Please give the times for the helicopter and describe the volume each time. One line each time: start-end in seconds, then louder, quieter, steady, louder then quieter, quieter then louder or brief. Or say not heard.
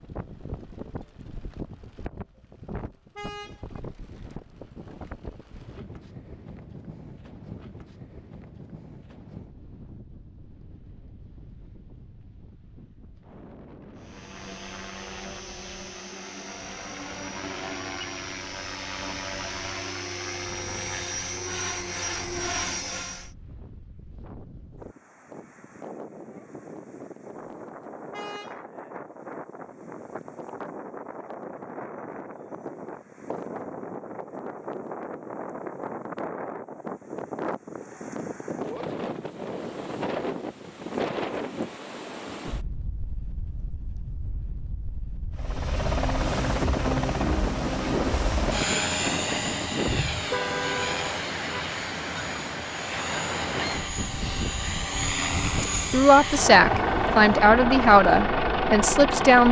13.9-23.3 louder
45.4-59.4 quieter then louder.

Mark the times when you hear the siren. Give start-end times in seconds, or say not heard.
not heard.